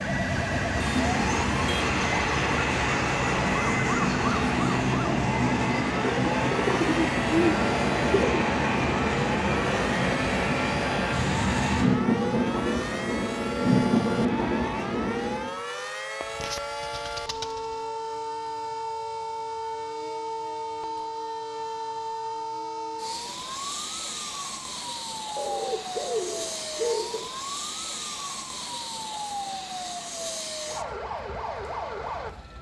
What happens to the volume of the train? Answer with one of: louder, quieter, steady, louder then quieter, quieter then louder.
steady.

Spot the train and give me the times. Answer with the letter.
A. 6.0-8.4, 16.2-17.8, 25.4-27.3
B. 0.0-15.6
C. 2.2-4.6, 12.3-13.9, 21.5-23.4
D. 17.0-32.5
B.